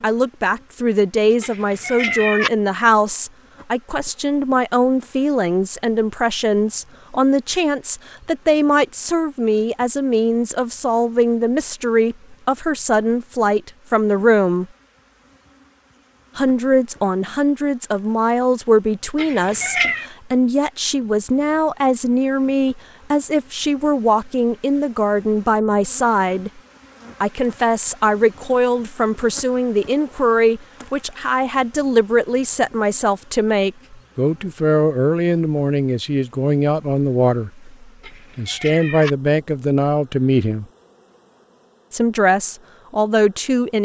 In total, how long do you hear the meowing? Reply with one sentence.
The meowing can be heard for 3 seconds in total.